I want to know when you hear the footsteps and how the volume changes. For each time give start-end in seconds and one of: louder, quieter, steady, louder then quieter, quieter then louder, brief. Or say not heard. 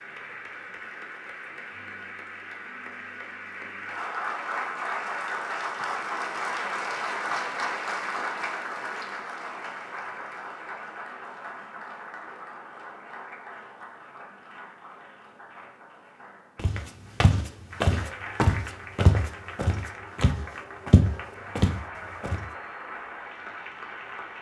16.6-22.4 steady.